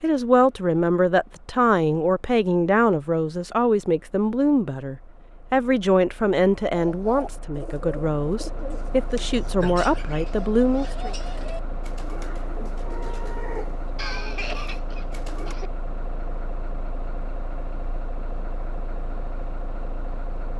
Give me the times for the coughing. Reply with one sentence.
You can hear the coughing from 13.9 to 15.7 s.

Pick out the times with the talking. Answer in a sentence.
You can hear the talking from 0.0 to 11.2 s.